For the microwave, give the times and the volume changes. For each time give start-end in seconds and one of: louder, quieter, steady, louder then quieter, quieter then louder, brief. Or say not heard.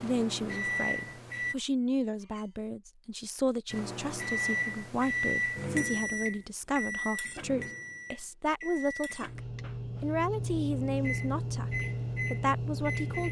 0.0-1.6 brief
3.7-13.2 quieter then louder.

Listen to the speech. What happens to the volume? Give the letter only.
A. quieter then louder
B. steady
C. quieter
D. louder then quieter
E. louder
B.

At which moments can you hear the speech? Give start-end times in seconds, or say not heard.
0.0-9.4, 10.0-13.2.